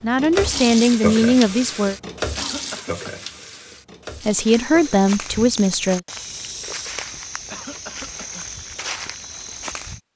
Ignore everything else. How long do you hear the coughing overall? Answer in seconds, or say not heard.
2 s.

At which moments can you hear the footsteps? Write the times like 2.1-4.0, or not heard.
4.5-10.0.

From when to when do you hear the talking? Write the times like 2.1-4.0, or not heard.
0.0-1.9, 4.2-6.0.